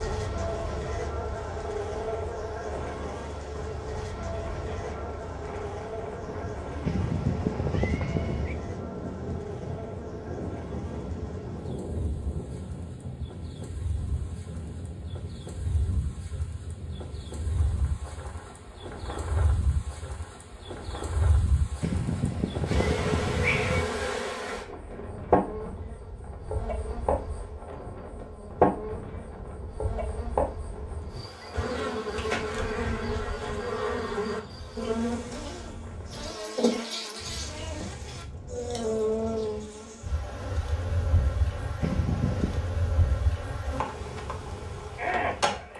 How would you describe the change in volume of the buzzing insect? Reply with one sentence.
The loudness of the buzzing insect goes down, then up.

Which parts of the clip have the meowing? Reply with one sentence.
The meowing can be heard from 6.8 to 8.6 s, from 21.8 to 23.9 s and from 41.8 to 42.6 s.